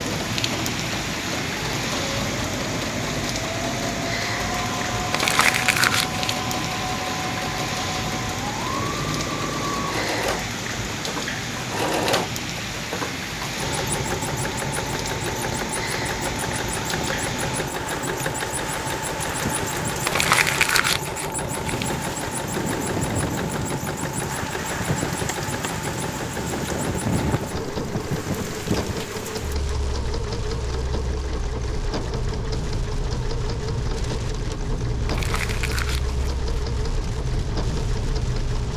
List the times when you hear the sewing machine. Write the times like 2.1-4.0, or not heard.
0.0-38.7.